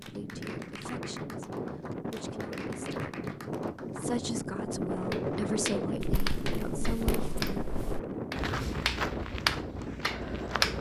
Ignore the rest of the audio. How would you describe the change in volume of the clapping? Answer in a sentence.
The loudness of the clapping goes up.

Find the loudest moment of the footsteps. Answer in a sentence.
The loudest moment of the footsteps is at 9 seconds.